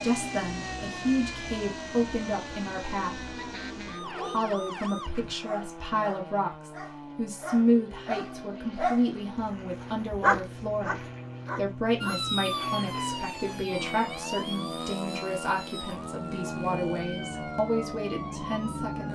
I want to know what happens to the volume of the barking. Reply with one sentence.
The volume of the barking goes up, then down.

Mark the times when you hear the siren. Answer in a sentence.
You can hear the siren from 0.0 to 5.3 s and from 12.0 to 19.0 s.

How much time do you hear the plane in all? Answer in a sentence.
You can hear the plane for 19 seconds altogether.